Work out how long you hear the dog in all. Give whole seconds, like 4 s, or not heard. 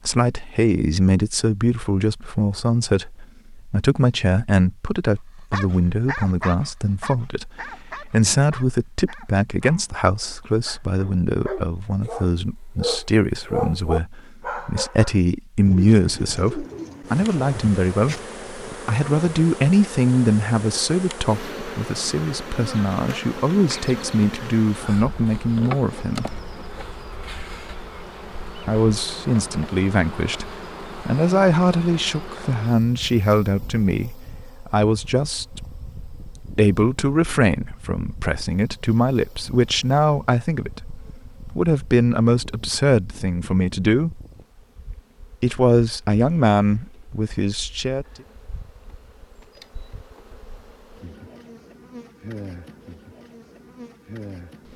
10 s.